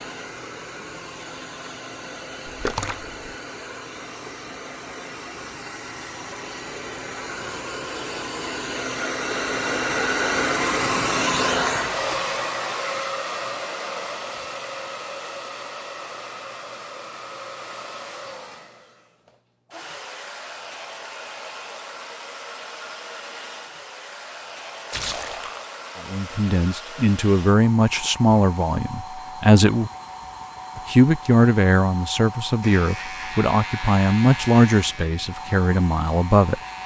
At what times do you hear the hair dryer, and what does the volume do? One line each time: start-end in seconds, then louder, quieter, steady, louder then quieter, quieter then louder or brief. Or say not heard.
0.0-36.8 louder then quieter.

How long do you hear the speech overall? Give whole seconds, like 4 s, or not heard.
10 s.